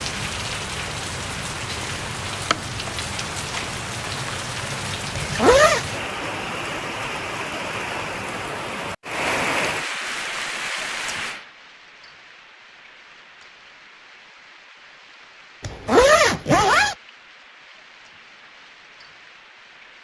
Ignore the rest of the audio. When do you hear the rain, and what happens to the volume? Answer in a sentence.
The rain can be heard from 0.0 to 19.9 s, getting quieter.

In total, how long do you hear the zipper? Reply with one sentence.
You can hear the zipper for 2 seconds altogether.